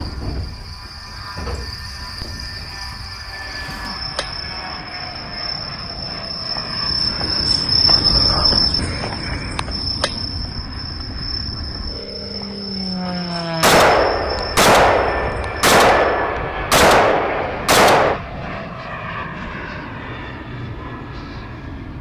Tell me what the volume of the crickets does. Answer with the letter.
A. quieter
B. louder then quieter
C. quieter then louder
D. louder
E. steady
B.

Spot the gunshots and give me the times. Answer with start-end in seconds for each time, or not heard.
13.6-18.2.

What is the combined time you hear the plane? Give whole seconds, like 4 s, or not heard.
22 s.